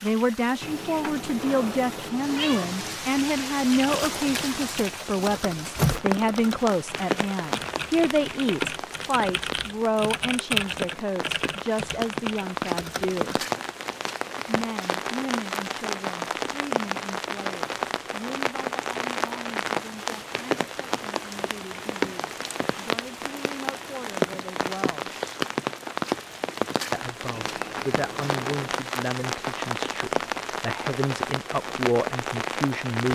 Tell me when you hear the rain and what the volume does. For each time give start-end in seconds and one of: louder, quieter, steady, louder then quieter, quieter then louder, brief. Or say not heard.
0.0-33.1 steady.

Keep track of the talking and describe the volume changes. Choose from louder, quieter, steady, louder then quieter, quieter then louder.
quieter then louder.